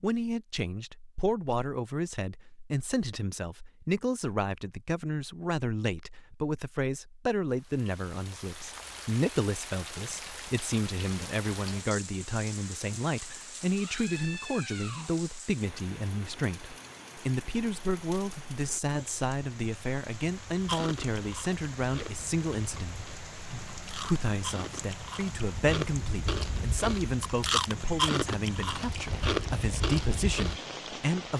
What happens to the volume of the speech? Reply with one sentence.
The volume of the speech stays about the same.